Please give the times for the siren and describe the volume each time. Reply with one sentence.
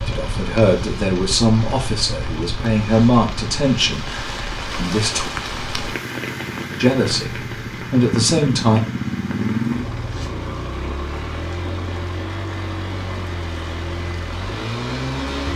The siren can't be heard in this clip.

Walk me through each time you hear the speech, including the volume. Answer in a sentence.
You can hear the speech from 0.0 to 5.3 s, getting quieter; and briefly from 6.8 to 8.8 s.